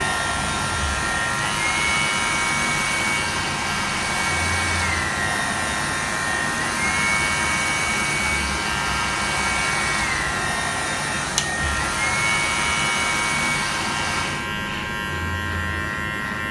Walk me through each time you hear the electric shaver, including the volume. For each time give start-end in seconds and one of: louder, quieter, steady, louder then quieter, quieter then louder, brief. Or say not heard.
0.0-16.4 steady.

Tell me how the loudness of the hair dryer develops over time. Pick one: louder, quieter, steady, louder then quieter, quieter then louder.
steady.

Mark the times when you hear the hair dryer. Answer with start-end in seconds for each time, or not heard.
0.0-14.5.